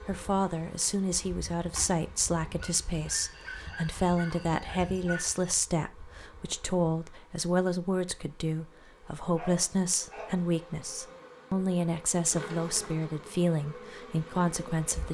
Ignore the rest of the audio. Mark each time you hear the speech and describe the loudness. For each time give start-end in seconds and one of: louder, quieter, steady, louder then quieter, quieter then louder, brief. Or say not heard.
0.1-15.0 steady.